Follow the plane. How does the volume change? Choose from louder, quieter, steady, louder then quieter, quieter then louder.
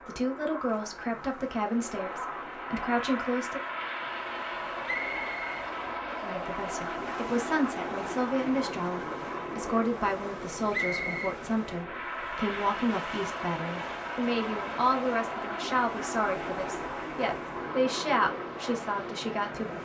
steady.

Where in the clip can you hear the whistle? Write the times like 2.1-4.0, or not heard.
4.8-6.4, 10.7-11.3.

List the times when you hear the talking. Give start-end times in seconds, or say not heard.
0.1-3.6, 6.2-19.7.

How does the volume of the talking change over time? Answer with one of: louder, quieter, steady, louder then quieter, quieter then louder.
steady.